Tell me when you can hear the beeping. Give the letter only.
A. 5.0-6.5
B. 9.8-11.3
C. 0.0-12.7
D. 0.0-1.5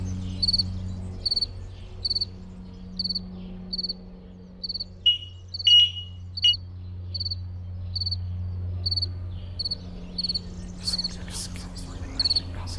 A.